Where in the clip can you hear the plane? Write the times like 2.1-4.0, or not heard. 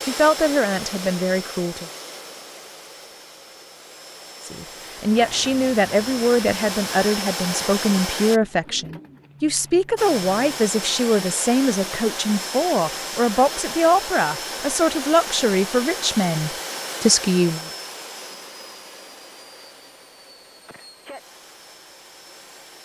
0.0-8.4, 9.9-22.8.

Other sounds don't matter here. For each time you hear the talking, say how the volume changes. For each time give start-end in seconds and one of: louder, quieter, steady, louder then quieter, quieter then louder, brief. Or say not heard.
0.0-1.9 brief
4.5-17.7 steady.